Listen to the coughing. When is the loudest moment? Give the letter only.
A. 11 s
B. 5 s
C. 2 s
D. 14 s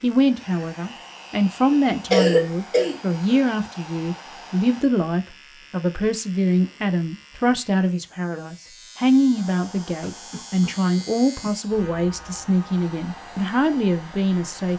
C.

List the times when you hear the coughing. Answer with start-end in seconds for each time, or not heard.
1.7-3.5, 10.0-11.5.